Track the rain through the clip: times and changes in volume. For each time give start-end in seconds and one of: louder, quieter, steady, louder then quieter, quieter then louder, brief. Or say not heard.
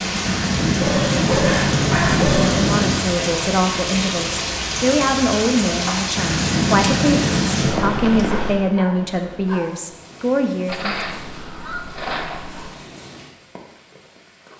0.0-14.5 quieter.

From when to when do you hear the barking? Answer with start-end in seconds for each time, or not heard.
0.8-2.7, 8.2-9.8.